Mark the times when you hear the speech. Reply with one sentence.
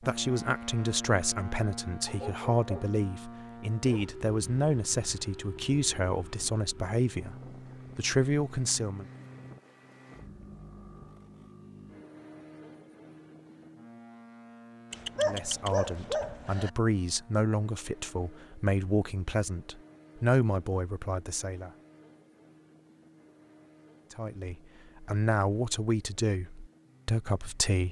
The speech can be heard from 0.1 to 7.3 s, from 8.0 to 9.1 s, from 15.2 to 21.7 s and from 24.1 to 27.8 s.